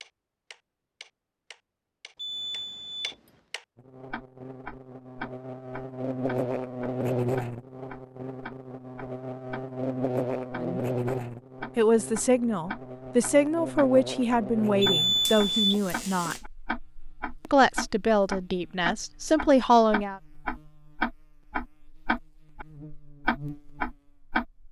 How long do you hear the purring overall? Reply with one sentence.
You can't hear the purring here.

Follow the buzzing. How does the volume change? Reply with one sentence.
The loudness of the buzzing goes down.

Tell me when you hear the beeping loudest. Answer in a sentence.
The loudest moment of the beeping is at 15 seconds.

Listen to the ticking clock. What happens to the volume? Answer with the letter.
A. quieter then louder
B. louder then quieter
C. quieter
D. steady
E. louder
E.